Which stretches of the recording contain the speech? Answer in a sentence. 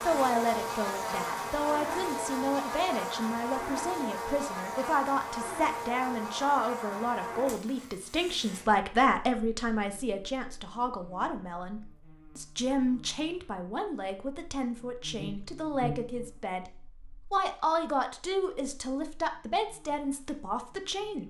The speech can be heard from 0.0 to 16.7 s and from 17.3 to 21.2 s.